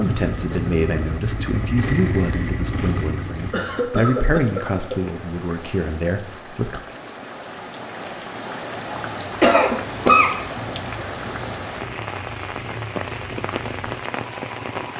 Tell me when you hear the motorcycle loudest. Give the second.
2 s.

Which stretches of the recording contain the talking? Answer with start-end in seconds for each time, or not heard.
0.0-6.8.